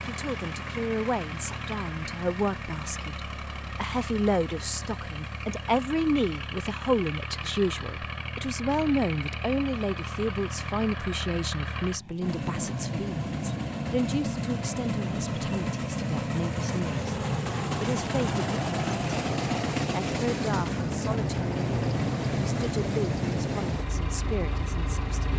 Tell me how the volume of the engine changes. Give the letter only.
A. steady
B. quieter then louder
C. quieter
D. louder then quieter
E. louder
E.